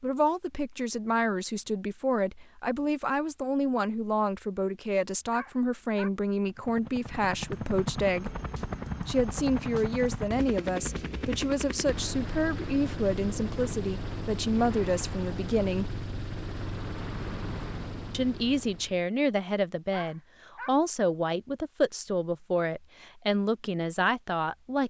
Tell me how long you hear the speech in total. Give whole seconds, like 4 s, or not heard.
22 s.